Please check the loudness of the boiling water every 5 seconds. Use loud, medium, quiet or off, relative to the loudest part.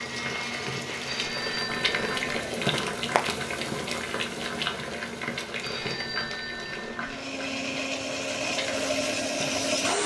loud, medium.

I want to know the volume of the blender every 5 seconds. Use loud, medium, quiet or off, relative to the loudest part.
medium, loud.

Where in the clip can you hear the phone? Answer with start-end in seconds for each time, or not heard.
1.1-2.3, 5.6-7.2.